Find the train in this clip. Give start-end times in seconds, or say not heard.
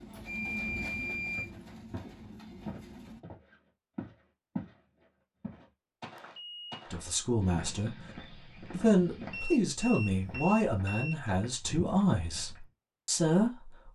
0.0-3.2.